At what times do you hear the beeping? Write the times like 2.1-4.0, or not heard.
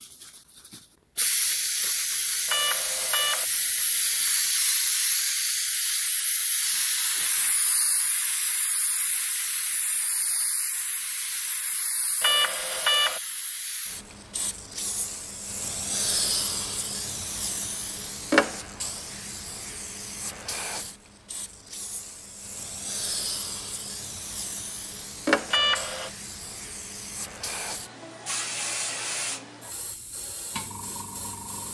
2.5-3.5, 12.2-13.2, 25.5-26.1.